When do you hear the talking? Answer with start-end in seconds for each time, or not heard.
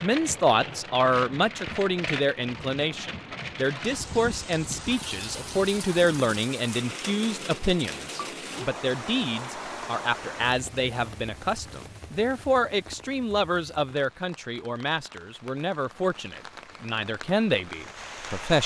0.0-18.6.